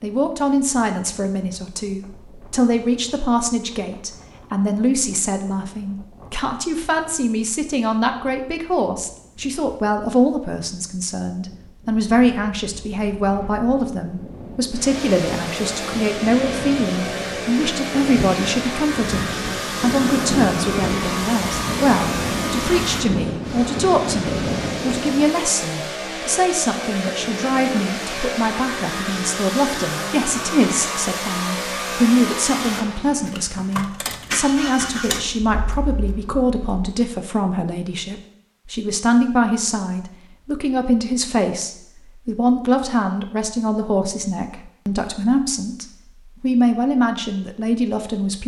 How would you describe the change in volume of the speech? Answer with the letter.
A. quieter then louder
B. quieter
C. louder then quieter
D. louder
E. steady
E.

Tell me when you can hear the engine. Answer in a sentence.
You can hear the engine from 14.7 to 37.0 s.